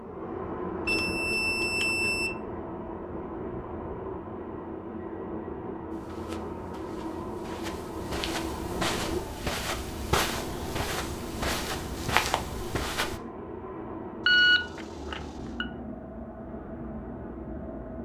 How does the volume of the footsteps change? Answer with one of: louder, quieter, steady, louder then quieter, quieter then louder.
louder.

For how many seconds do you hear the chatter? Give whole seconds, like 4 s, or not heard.
not heard.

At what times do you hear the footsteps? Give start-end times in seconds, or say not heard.
5.9-13.2.